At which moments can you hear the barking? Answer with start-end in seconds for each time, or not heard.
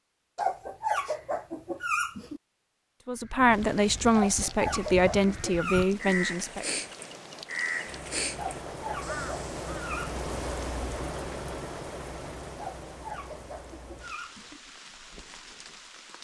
0.3-2.4, 4.1-6.2, 8.3-10.2, 12.6-14.6.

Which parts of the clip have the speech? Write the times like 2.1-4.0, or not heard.
3.0-6.8.